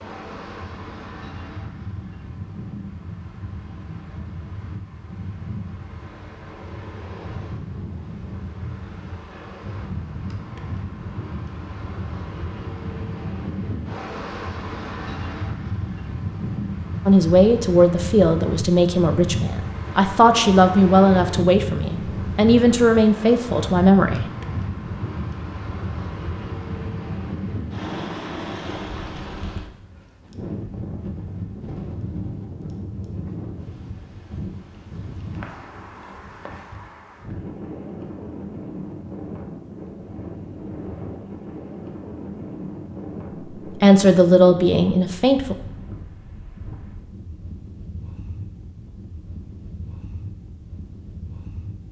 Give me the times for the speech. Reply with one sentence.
The speech can be heard from 17.1 to 24.2 s and from 43.6 to 45.5 s.